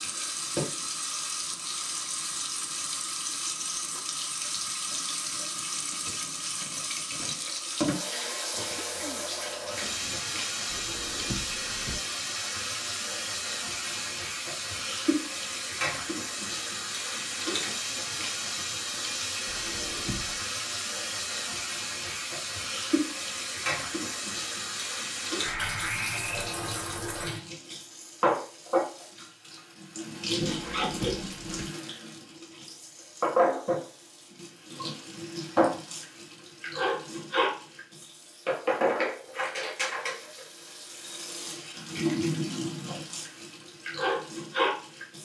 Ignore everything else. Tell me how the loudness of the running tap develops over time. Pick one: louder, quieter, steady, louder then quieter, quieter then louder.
steady.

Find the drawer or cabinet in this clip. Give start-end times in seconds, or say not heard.
10.7-12.0, 19.4-20.4, 30.4-31.7.